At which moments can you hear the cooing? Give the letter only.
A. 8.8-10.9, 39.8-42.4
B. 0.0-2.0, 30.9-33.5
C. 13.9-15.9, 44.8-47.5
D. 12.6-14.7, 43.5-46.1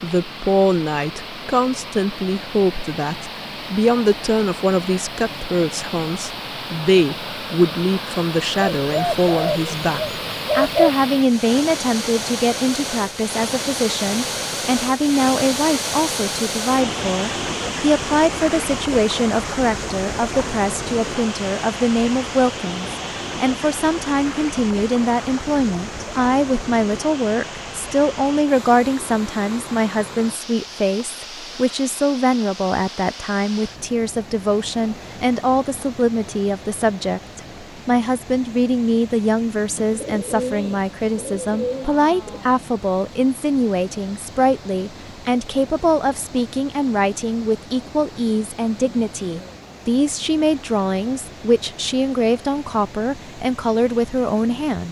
A.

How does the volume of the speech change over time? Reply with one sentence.
The loudness of the speech stays about the same.